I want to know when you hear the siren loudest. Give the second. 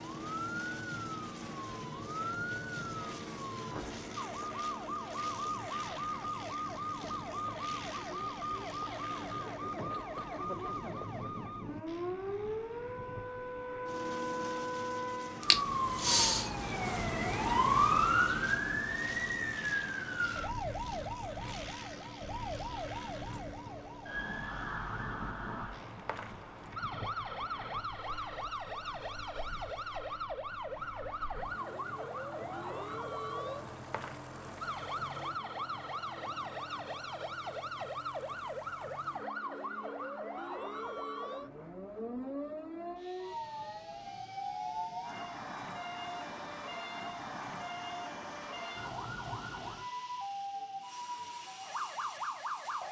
18 s.